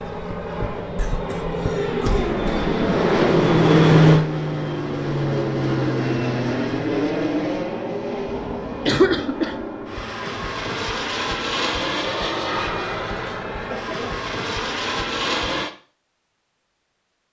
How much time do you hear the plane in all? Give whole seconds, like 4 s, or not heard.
16 s.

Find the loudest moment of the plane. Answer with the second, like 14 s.
4 s.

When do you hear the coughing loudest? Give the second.
9 s.